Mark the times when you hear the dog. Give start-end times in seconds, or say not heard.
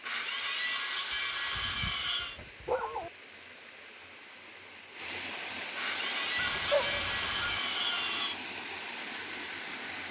1.1-3.1, 6.3-7.6.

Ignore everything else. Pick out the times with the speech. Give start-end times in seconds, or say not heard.
not heard.